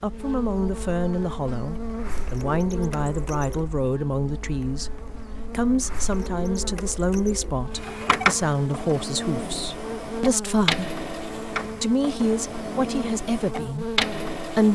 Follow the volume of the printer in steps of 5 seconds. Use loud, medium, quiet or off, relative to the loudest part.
medium, loud, loud.